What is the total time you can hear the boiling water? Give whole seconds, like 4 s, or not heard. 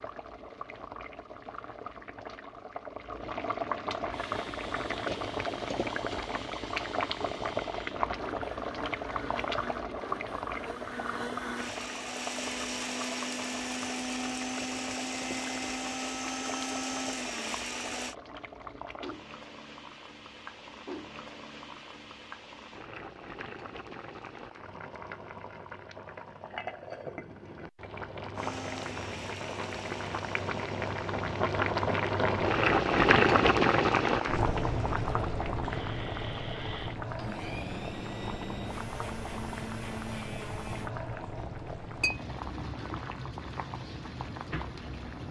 45 s.